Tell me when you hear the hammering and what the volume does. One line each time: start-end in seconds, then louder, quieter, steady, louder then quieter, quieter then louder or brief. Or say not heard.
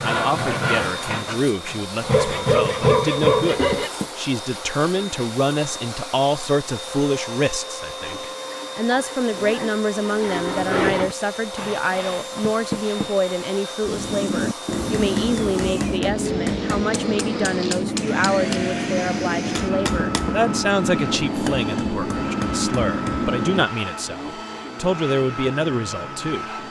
13.8-23.6 steady.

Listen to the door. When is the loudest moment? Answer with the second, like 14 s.
13 s.